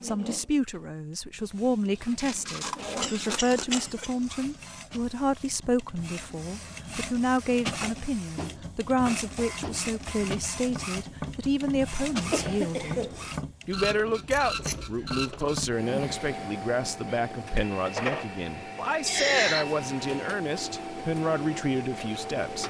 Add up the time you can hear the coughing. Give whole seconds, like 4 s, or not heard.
3 s.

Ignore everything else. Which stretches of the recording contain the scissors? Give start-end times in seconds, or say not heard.
2.1-3.9, 14.2-14.9.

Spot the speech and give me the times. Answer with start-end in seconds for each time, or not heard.
0.0-13.1, 13.7-22.6.